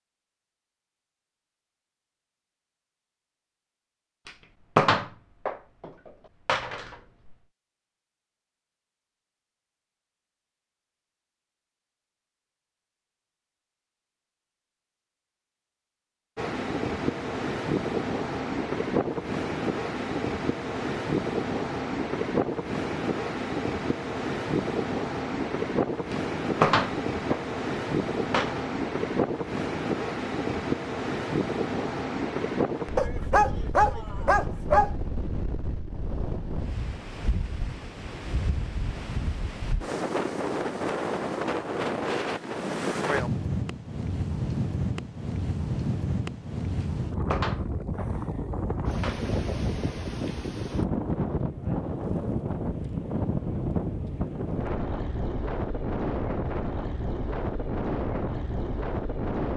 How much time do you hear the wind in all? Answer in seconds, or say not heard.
43 s.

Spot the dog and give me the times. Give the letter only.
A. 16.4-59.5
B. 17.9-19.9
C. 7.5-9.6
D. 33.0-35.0
D.